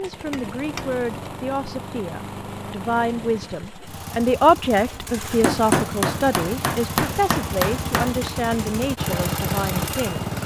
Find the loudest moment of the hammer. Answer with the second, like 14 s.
6 s.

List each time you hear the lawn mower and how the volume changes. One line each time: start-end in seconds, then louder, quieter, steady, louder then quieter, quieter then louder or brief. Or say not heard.
0.0-10.4 louder.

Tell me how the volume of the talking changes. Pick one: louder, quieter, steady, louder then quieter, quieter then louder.
louder then quieter.